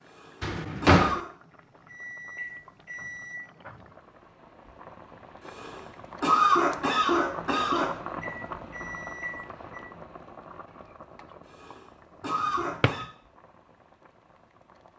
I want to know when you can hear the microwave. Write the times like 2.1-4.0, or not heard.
1.9-3.4, 8.2-9.8.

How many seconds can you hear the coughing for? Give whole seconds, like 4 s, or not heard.
5 s.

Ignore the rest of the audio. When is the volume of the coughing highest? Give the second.
6 s.